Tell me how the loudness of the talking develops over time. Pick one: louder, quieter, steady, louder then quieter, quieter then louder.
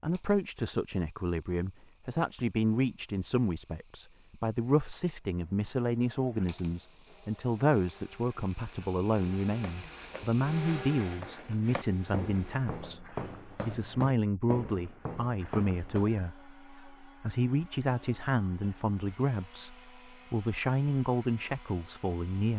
steady.